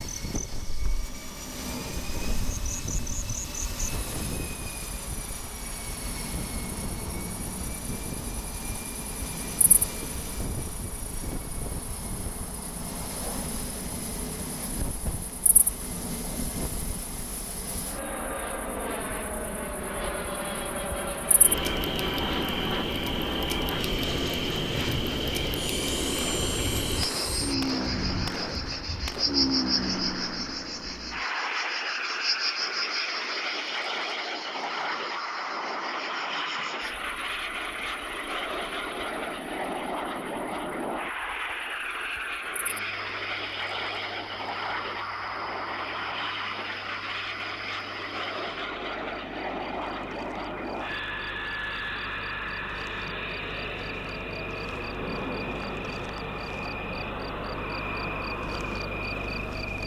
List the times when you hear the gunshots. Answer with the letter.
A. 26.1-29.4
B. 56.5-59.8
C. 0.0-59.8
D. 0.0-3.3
A.